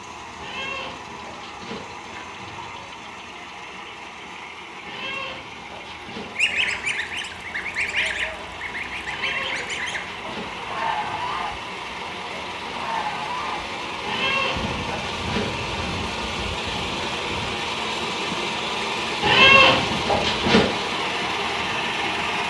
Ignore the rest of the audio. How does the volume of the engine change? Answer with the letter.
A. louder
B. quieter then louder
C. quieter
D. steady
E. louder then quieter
A.